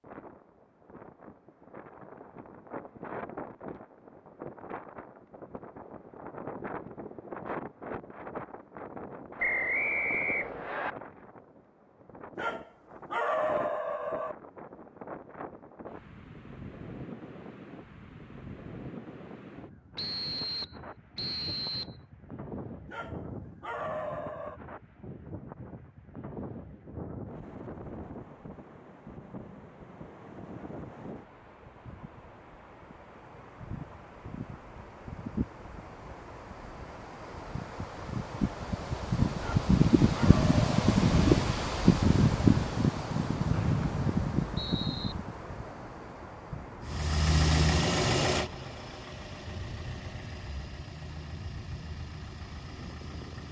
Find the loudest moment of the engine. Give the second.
48 s.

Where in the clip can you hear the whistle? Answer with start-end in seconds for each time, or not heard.
9.4-10.9, 19.9-21.9, 43.5-45.1.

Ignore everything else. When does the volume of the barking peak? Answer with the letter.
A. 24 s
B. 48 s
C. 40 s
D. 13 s
D.